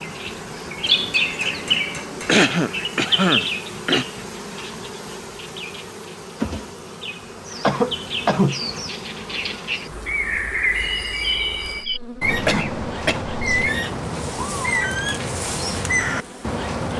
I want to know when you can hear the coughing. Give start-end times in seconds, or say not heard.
2.2-4.0, 7.6-8.6, 12.4-13.2.